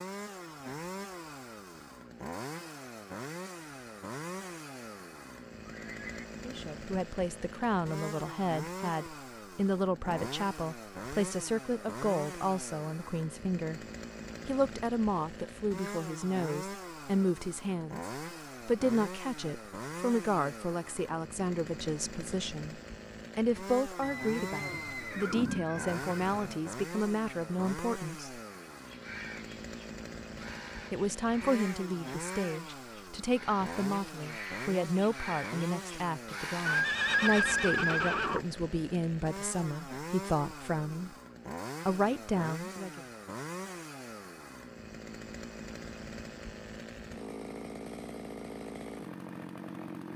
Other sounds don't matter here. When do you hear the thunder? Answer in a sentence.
You can't hear the thunder here.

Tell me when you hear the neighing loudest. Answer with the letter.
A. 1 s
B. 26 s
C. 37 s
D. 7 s
C.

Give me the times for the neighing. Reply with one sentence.
You can hear the neighing from 5.7 to 6.3 s, from 24.0 to 26.6 s and from 36.6 to 38.5 s.